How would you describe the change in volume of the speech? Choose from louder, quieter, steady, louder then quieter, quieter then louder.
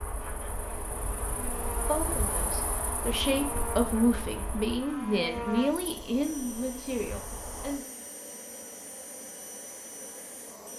louder then quieter.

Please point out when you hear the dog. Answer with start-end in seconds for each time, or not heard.
not heard.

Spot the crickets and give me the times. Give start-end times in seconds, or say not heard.
0.0-7.8.